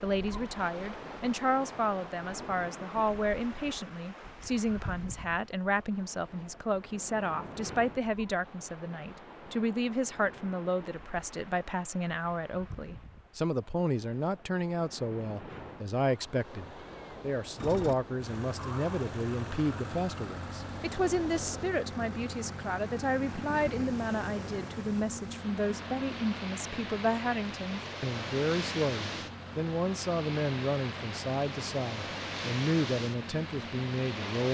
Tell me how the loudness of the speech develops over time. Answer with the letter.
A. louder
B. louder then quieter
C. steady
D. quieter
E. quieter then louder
C.